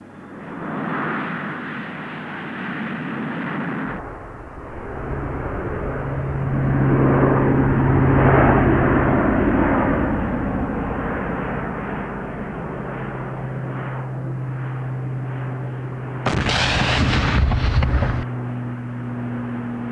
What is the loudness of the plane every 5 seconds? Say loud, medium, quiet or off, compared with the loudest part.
medium, loud, medium, medium.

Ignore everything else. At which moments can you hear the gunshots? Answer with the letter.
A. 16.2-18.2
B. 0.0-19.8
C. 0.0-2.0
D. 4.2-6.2
A.